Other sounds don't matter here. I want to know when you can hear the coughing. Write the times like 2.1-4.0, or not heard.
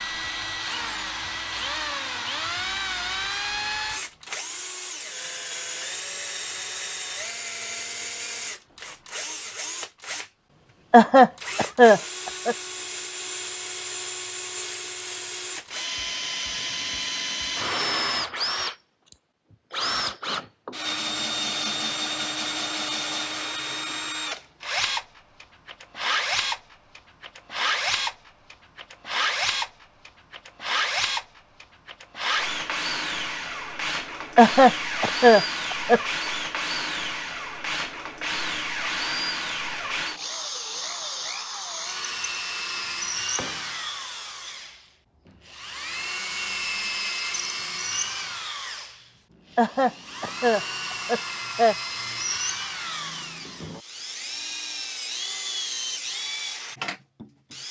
10.9-12.6, 34.4-36.0, 49.5-51.8.